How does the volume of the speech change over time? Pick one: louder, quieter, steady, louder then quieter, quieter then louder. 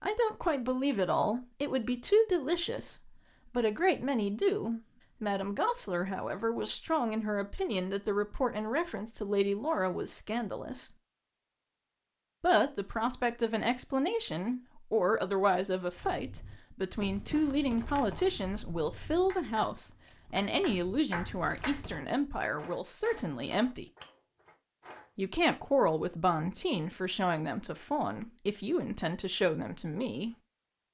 steady.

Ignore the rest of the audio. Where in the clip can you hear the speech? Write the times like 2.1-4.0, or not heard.
0.0-10.9, 12.4-23.9, 25.1-30.4.